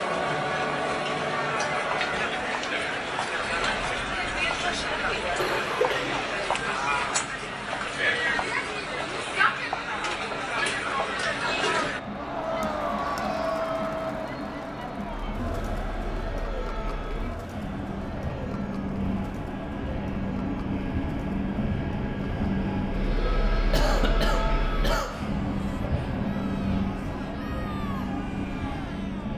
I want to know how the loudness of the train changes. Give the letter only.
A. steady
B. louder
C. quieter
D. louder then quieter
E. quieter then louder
B.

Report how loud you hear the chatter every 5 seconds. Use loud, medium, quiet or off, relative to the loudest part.
loud, loud, loud, medium, quiet, quiet.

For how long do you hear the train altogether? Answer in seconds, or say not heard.
29 s.